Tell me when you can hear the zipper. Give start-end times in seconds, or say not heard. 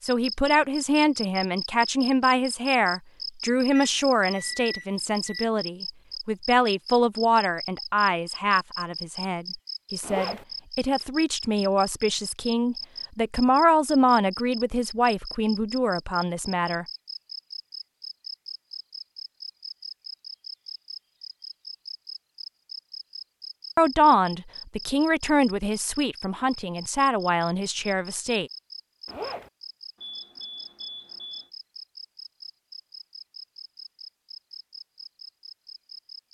10.0-10.4, 29.1-29.5.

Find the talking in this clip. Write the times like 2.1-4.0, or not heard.
0.0-16.9, 23.8-28.5.